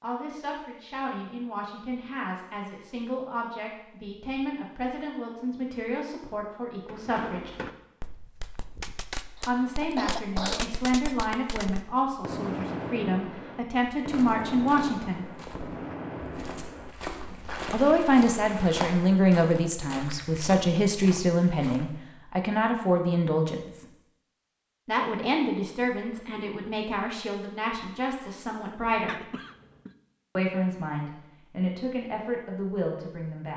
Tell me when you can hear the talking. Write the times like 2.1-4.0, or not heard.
0.0-7.6, 9.4-15.2, 17.7-23.9, 24.9-29.2, 30.4-33.5.